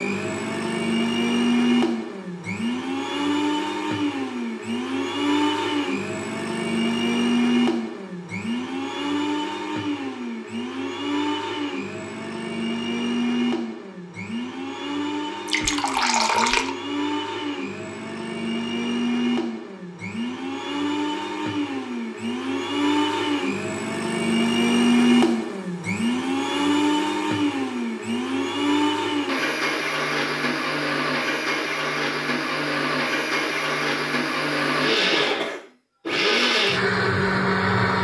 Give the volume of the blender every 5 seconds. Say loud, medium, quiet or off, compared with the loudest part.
loud, loud, medium, medium, loud, loud, loud, loud.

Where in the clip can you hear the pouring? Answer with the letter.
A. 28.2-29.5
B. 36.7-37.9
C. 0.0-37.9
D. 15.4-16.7
D.